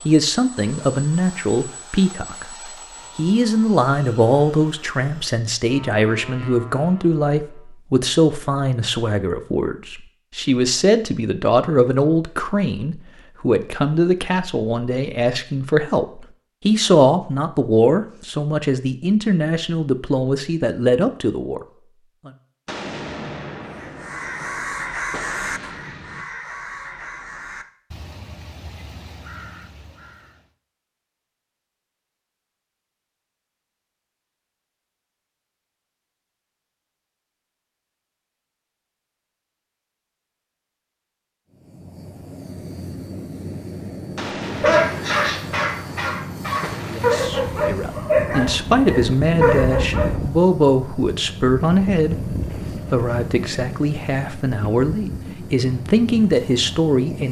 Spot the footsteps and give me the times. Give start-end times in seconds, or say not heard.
not heard.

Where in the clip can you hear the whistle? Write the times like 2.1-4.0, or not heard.
not heard.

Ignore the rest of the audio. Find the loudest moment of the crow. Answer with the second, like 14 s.
25 s.